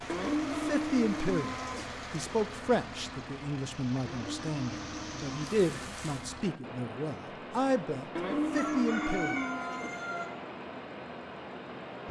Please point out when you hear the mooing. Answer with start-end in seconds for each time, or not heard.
0.1-1.9, 4.0-5.5, 8.2-9.9.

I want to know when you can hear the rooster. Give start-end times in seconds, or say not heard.
8.6-10.3.